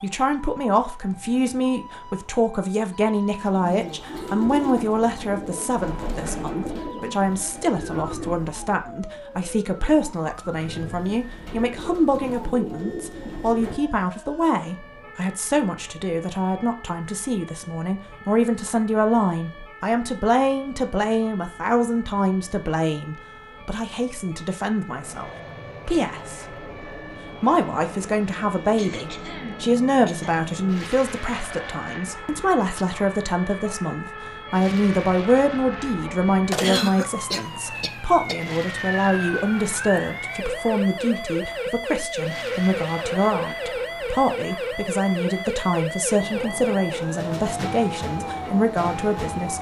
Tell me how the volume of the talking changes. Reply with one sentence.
The loudness of the talking stays about the same.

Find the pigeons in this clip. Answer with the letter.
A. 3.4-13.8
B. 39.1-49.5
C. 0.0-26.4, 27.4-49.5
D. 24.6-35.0
A.